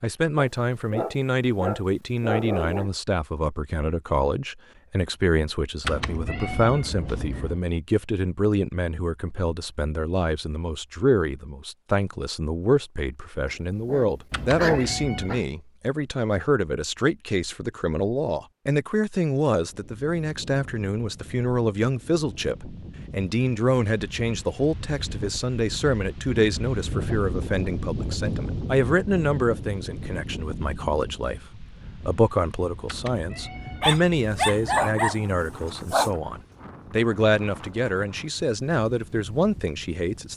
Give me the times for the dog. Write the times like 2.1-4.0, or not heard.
0.3-2.9, 13.4-15.4, 33.8-36.1.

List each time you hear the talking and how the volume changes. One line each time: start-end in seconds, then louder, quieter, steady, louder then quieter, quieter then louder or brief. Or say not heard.
0.0-40.3 steady.